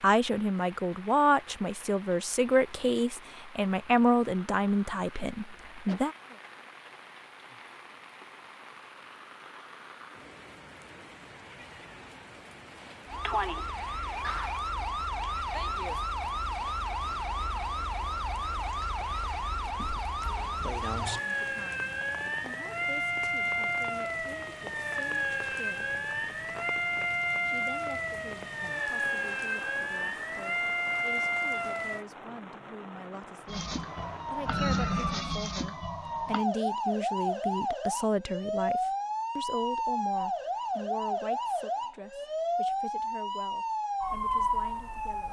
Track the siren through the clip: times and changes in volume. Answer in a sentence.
The siren can be heard from 13.1 to 32.0 s, at a steady volume; and from 33.5 to 45.2 s, at a steady volume.